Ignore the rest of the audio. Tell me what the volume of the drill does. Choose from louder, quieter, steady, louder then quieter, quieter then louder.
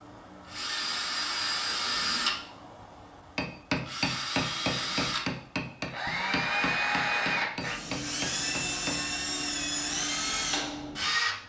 quieter then louder.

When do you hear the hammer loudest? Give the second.
4 s.